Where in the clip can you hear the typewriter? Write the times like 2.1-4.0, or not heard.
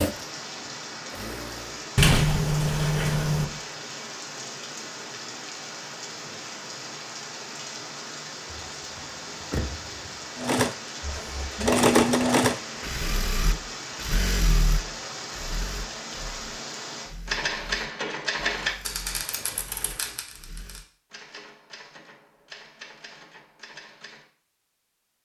17.2-24.2.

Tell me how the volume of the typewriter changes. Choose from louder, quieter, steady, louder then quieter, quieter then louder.
quieter.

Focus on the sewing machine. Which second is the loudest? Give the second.
12 s.